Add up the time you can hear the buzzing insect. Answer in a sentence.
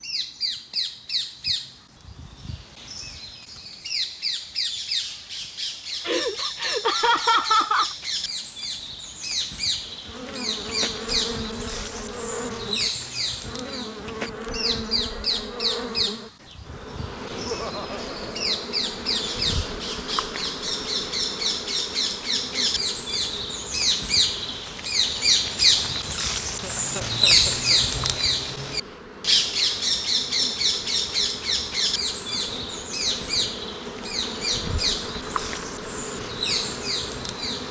The buzzing insect can be heard for 28 seconds in total.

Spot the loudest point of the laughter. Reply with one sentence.
The loudest moment of the laughter is at 7 seconds.